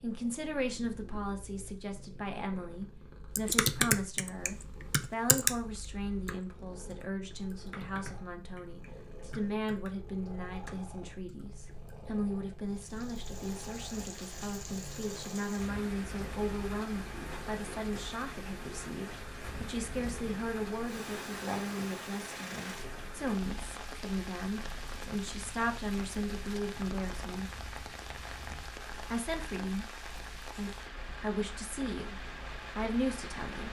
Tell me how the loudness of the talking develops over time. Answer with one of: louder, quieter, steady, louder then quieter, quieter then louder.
steady.